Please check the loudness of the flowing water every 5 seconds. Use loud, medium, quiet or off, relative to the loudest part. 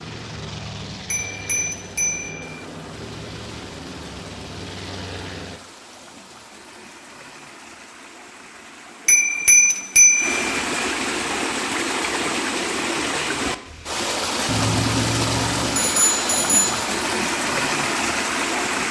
quiet, quiet, loud, loud.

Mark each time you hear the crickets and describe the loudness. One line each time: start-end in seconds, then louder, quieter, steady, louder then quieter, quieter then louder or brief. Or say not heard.
not heard.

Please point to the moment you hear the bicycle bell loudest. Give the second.
10 s.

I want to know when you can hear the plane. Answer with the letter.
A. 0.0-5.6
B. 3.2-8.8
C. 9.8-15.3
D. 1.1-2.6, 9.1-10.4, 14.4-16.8
A.